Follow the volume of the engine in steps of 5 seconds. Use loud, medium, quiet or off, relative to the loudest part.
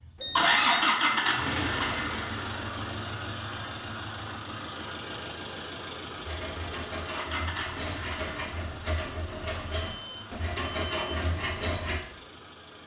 loud, medium, quiet.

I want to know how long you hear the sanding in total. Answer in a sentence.
The sanding can be heard for 6 seconds in total.